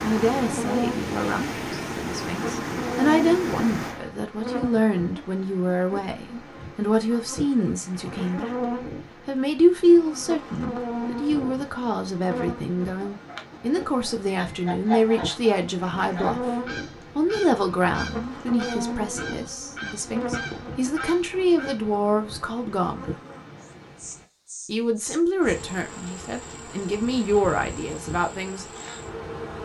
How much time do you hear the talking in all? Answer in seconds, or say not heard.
26 s.